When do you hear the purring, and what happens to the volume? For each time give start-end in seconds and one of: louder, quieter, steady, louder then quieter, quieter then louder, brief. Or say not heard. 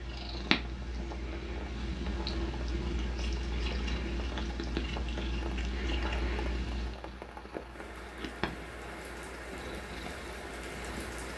0.0-11.3 quieter.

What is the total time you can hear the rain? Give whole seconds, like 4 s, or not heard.
11 s.